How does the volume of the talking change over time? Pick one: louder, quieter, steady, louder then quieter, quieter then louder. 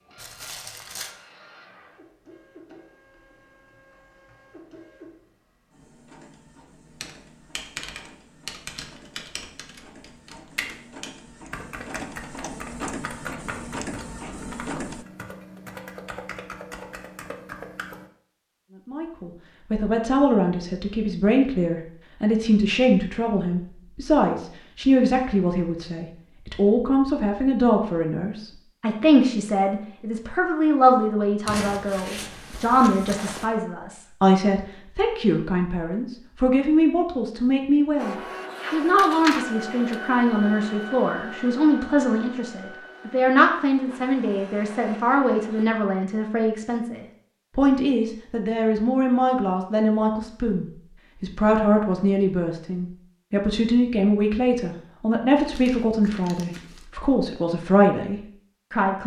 steady.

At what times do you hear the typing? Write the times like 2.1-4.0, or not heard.
7.0-18.1.